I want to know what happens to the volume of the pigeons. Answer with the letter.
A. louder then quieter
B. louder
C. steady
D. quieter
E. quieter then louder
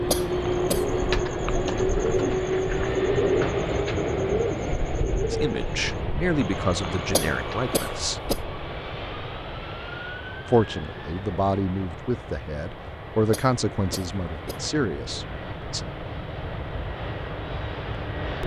D.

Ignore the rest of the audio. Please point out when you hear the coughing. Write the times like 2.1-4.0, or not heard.
0.1-0.8, 7.1-8.4, 13.3-14.6.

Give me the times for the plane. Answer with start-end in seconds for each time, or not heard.
0.0-18.4.